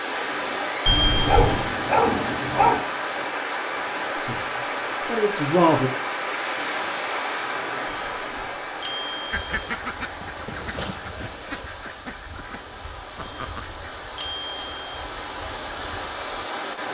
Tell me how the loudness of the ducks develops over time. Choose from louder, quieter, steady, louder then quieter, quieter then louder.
quieter.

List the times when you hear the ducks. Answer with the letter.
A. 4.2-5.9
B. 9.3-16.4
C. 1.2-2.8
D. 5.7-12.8
B.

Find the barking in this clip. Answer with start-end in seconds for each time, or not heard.
1.2-2.8.